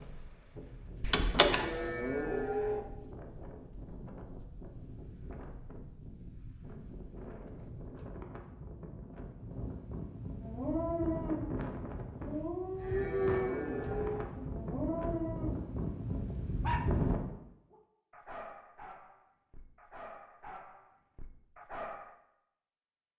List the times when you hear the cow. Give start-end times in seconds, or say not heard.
1.4-2.8, 12.8-14.2.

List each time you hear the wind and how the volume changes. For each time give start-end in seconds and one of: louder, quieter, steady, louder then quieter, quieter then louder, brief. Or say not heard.
0.0-17.2 louder.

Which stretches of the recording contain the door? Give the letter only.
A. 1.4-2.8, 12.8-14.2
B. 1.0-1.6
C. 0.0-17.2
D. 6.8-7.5
B.